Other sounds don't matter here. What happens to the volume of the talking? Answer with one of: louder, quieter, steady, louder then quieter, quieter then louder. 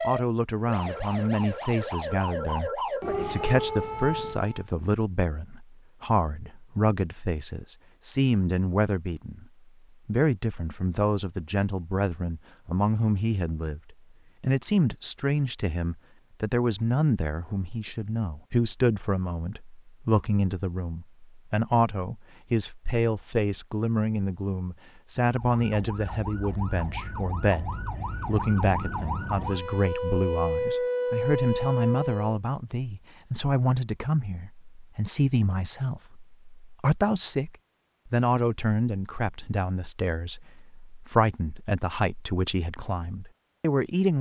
steady.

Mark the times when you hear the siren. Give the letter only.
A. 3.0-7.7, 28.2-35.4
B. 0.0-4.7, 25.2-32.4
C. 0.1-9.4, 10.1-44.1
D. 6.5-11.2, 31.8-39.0
B.